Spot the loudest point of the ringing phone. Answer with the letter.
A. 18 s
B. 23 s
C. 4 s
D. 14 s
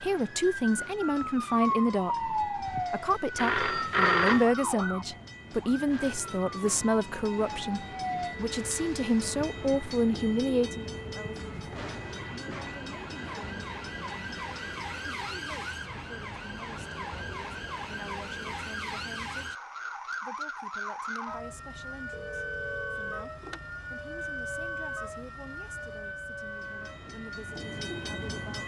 C.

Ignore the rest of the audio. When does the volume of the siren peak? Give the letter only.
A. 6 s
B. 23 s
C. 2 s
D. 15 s
C.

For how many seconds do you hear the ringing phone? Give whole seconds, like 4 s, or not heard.
3 s.